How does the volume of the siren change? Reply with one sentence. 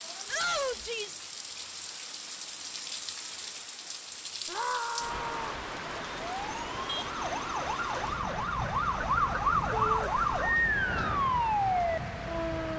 The volume of the siren goes up.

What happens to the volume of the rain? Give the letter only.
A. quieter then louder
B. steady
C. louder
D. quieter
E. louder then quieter
B.